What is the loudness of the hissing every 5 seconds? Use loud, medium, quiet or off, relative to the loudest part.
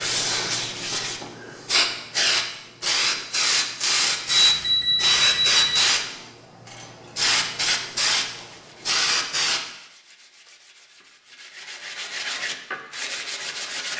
loud, loud, off.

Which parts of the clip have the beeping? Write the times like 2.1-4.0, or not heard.
4.3-5.9.